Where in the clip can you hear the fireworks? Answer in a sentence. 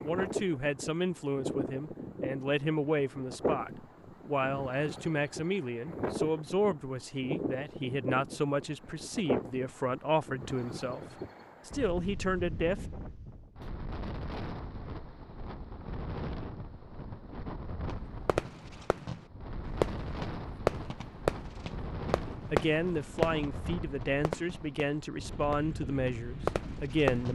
You can hear the fireworks from 17.9 to 27.3 s.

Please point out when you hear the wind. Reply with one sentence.
The wind can be heard from 0.0 to 27.1 s.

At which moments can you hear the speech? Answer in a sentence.
The speech can be heard from 0.0 to 11.0 s, from 11.7 to 12.8 s and from 22.5 to 27.3 s.